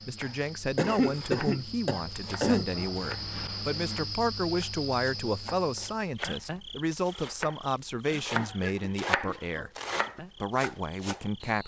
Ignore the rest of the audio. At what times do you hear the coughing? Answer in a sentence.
The coughing can be heard from 0.8 to 2.7 s and from 8.4 to 9.7 s.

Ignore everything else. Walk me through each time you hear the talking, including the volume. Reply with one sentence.
The talking can be heard from 0.1 to 11.6 s, at a steady volume.